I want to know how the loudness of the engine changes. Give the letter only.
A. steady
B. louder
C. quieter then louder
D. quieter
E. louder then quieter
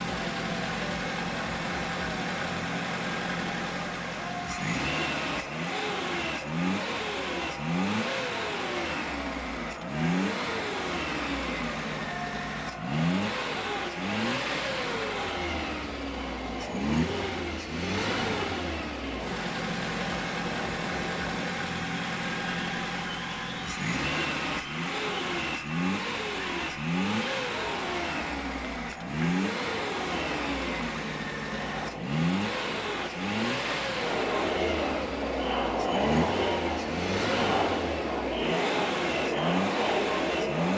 A.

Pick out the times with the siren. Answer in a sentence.
You can't hear the siren here.